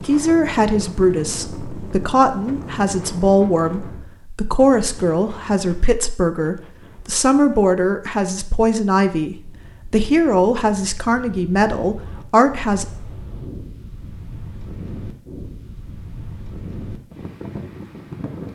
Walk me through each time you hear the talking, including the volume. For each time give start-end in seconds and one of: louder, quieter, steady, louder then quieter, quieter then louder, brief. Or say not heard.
0.0-12.8 steady.